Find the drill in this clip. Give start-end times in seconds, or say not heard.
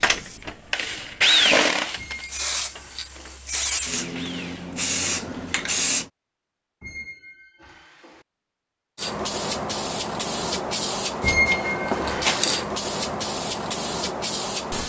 0.0-4.8.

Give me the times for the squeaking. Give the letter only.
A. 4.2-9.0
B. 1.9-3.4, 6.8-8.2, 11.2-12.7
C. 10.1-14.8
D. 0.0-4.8
B.